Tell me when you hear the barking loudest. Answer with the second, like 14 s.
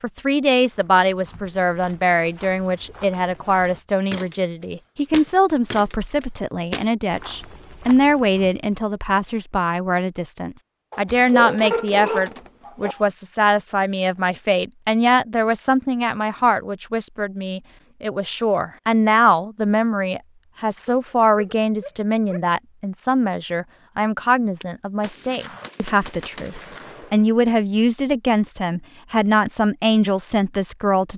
12 s.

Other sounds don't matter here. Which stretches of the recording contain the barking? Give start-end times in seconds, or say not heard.
10.9-12.9, 20.9-22.4.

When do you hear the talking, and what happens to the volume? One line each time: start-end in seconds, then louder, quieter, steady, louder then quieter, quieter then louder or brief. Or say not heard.
0.0-31.1 steady.